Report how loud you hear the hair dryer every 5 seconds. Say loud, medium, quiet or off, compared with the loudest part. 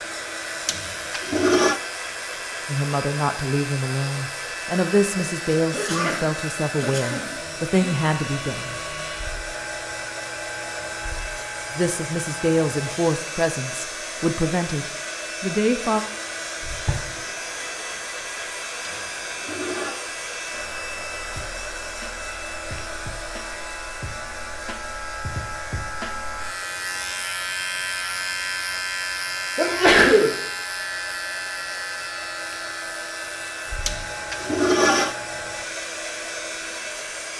loud, loud, loud, loud, loud, medium, loud, loud.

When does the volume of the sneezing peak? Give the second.
30 s.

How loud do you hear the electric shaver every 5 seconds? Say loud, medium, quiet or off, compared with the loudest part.
medium, medium, medium, medium, medium, loud, loud, medium.